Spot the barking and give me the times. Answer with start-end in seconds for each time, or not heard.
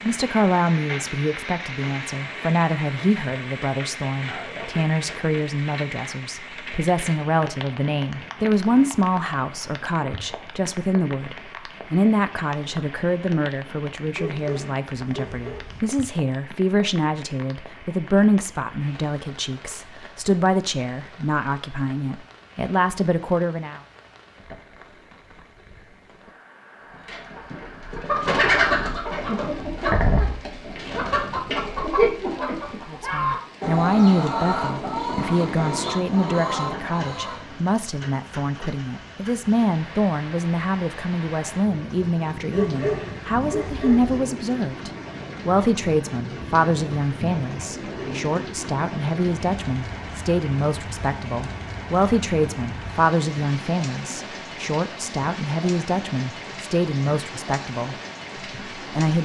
14.2-15.8, 42.5-44.2.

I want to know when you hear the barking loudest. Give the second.
43 s.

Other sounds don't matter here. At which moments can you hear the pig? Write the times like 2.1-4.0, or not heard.
not heard.